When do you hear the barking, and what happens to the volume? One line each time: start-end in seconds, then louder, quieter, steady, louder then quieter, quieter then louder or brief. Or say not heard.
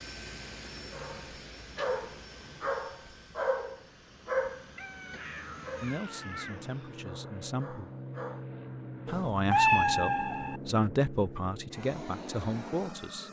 0.9-8.4 quieter.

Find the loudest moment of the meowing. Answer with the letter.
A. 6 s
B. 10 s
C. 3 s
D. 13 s
B.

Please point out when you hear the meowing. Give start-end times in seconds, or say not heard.
1.8-2.7, 4.8-7.0, 9.1-10.6.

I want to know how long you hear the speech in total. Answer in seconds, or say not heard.
6 s.